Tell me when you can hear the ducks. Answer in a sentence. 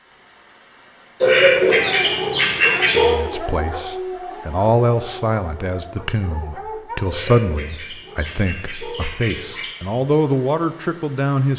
You can hear the ducks from 1.2 to 3.1 s and from 7.0 to 9.8 s.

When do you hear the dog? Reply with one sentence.
The dog can be heard from 1.6 to 7.0 s.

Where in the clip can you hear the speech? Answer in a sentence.
You can hear the speech from 2.9 to 11.5 s.